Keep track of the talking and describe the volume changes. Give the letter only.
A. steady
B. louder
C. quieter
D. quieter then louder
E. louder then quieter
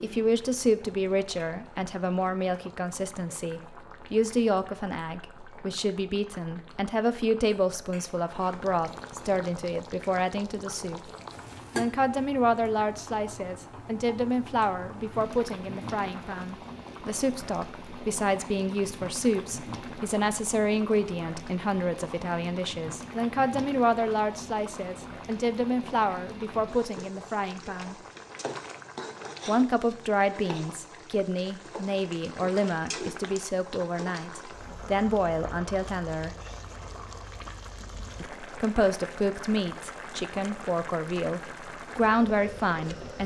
A.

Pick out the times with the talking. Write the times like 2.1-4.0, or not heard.
0.0-11.1, 11.8-27.9, 29.4-36.4, 38.2-43.2.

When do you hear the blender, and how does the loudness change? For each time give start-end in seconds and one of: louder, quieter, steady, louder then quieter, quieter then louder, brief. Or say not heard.
not heard.